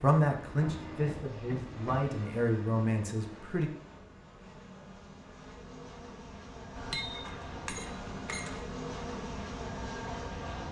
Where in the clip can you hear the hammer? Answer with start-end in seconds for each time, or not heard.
0.5-2.1, 6.8-8.6.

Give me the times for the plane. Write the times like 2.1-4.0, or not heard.
0.0-10.6.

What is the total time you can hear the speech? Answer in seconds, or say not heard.
4 s.